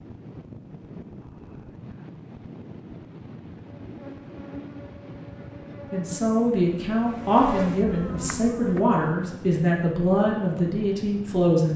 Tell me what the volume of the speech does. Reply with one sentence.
The loudness of the speech stays about the same.